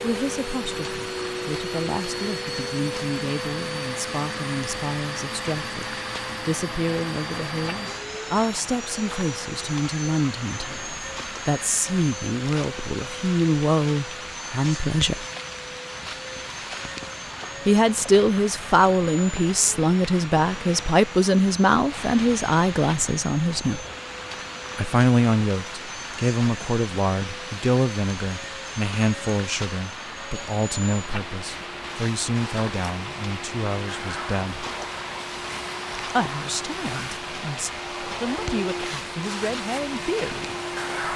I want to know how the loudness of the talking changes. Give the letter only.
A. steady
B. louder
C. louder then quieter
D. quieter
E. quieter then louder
C.